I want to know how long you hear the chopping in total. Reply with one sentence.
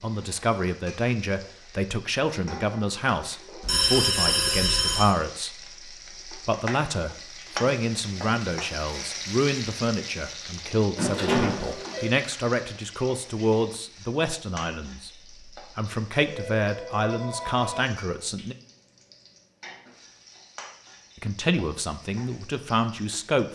You can't hear the chopping here.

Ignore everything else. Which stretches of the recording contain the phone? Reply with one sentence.
The phone can be heard from 3.6 to 5.2 s, from 10.9 to 12.1 s and from 16.2 to 17.9 s.